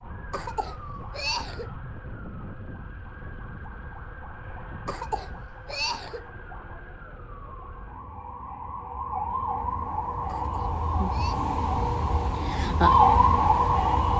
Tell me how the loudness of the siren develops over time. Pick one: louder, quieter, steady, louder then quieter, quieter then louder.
louder.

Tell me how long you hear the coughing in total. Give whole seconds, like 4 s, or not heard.
4 s.